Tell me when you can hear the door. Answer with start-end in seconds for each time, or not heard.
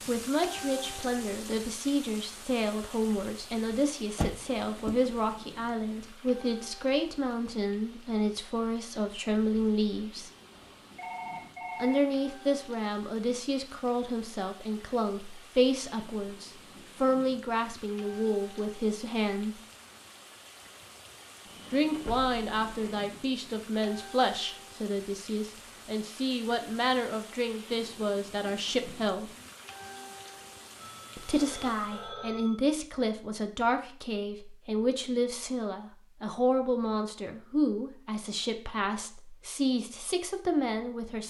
3.7-5.0.